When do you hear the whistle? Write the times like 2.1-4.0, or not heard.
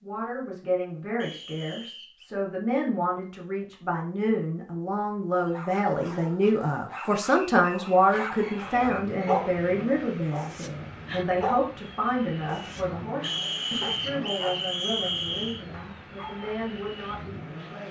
1.1-2.2, 7.0-9.3, 13.2-15.7.